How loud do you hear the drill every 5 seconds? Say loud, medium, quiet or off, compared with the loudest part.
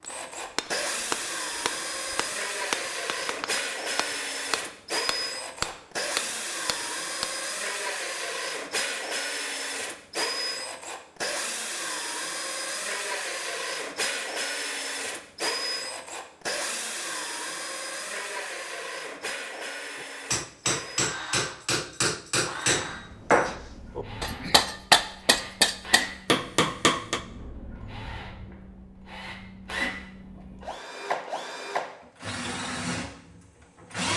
loud, loud, loud, loud, medium, medium, loud.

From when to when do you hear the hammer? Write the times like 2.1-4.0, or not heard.
0.0-7.3, 19.9-27.2.